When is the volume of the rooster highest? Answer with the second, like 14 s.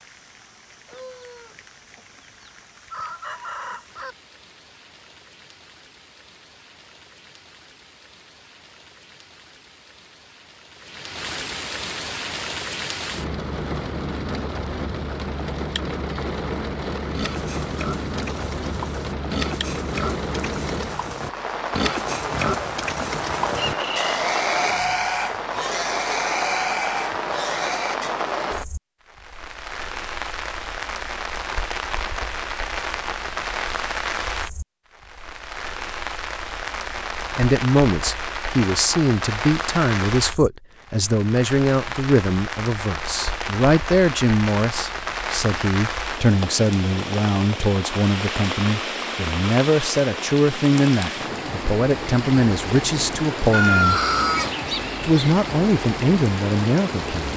54 s.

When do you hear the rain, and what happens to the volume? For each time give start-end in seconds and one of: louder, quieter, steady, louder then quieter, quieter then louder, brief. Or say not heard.
0.0-57.3 louder.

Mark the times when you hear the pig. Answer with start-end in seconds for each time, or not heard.
17.1-28.1.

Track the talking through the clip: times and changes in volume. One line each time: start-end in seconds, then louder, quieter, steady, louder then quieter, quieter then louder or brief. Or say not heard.
37.3-54.0 steady
55.0-57.3 brief.